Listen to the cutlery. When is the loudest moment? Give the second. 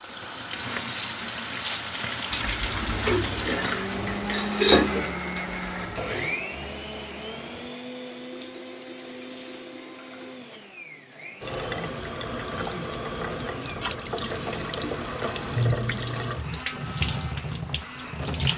5 s.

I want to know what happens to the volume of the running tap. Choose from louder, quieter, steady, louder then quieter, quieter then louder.
quieter then louder.